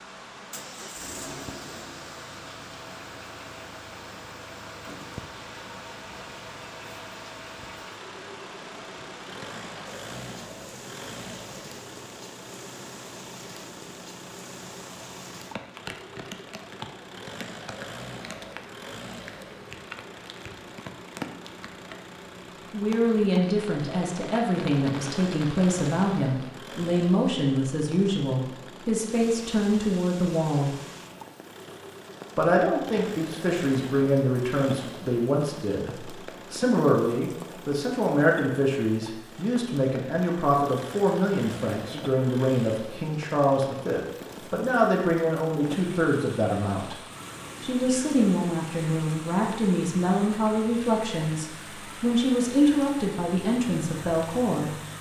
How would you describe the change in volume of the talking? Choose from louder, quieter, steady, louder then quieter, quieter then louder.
steady.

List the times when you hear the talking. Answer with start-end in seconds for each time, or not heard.
22.7-30.8, 32.4-47.0, 47.6-54.8.